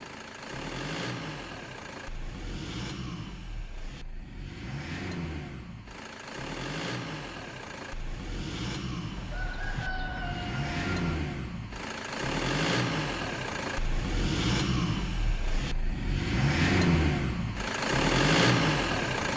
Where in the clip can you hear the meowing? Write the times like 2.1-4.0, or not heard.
not heard.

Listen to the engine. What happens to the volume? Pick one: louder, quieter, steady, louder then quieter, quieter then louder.
louder.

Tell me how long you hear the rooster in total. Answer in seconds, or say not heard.
2 s.